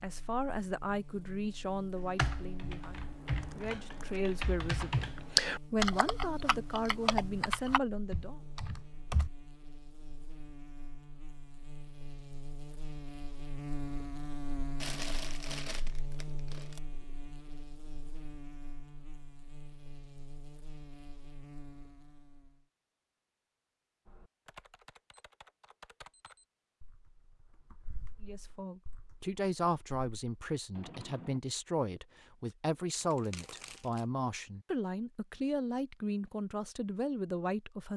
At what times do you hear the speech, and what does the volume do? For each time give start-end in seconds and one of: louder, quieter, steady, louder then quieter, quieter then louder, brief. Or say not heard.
0.0-8.4 quieter then louder
28.2-37.9 steady.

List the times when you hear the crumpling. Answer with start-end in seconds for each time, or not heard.
3.4-4.2, 14.8-16.8, 33.0-34.0.